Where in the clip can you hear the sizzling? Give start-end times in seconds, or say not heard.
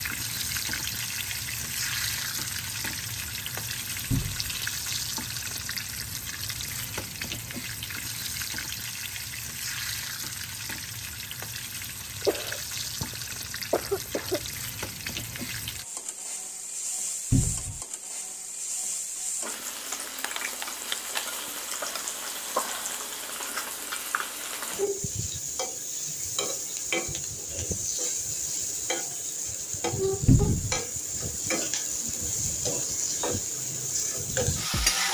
0.0-35.1.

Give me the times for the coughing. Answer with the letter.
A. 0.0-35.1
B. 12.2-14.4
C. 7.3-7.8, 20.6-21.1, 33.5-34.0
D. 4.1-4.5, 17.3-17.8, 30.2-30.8
B.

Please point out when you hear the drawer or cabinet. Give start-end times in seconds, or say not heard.
4.1-4.5, 17.3-17.8, 30.2-30.8.